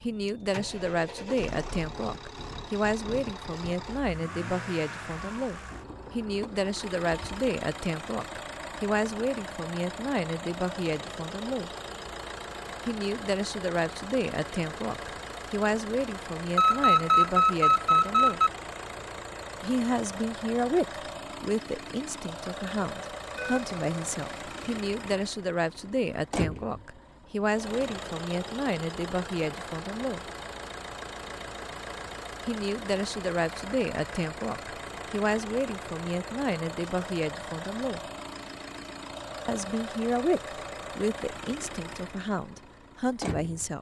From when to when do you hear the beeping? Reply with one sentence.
You can hear the beeping from 16.6 to 18.5 s and from 23.4 to 24.8 s.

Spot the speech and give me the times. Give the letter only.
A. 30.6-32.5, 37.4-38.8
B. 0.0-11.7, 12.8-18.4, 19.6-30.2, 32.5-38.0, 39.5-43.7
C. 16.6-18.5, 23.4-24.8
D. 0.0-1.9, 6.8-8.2
B.